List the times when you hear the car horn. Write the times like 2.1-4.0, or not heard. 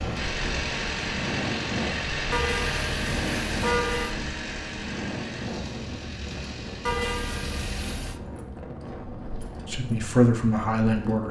2.3-4.2, 6.8-8.2.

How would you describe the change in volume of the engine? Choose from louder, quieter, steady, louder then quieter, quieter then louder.
quieter.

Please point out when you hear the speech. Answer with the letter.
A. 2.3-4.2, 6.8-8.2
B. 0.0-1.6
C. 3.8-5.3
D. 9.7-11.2
D.